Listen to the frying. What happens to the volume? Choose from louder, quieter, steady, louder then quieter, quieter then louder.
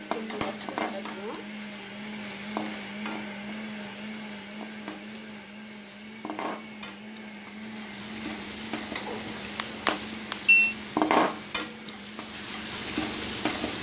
quieter then louder.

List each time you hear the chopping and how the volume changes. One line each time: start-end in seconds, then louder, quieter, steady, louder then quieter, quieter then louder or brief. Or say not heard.
not heard.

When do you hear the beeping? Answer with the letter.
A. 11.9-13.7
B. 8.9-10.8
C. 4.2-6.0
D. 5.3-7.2
B.